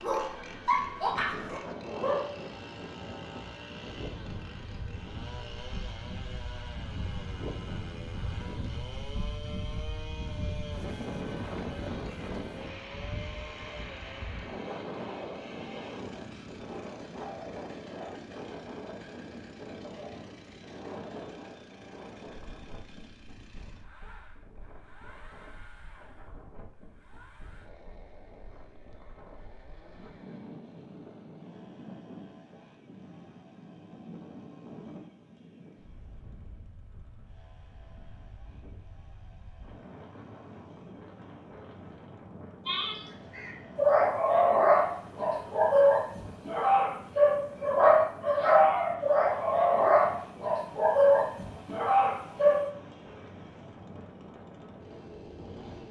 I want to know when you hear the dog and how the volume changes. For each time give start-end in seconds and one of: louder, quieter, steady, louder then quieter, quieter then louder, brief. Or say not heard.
0.0-2.2 brief
42.6-52.6 steady.